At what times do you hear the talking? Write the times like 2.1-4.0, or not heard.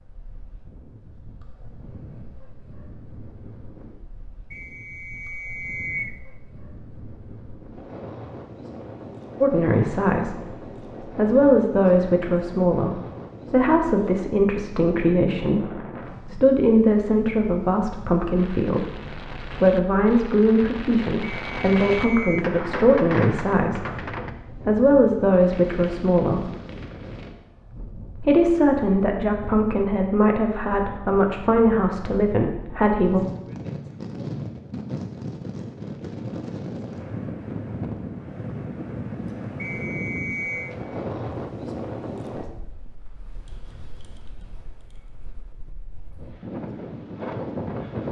9.4-26.5, 28.1-33.2.